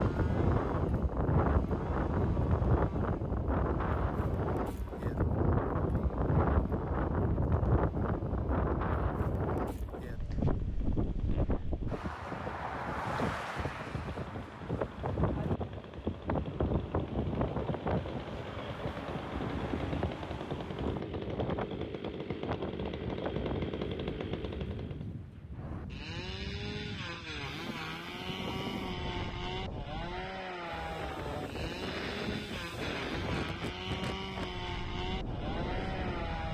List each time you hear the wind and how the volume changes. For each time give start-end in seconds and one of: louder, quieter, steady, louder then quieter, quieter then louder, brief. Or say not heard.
0.0-36.4 quieter.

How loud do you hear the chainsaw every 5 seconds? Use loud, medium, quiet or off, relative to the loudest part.
medium, quiet, quiet, medium, loud, loud, loud, loud.